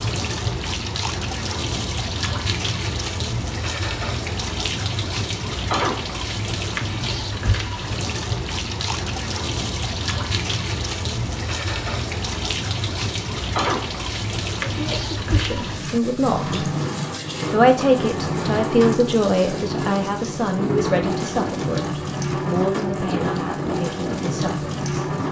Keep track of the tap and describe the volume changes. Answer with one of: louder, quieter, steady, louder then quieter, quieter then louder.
steady.